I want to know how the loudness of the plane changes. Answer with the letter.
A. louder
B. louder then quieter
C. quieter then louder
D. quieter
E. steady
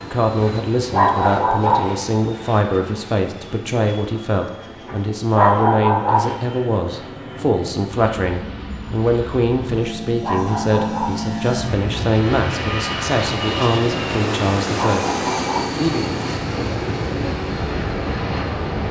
A.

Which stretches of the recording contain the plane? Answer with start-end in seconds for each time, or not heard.
0.0-18.8.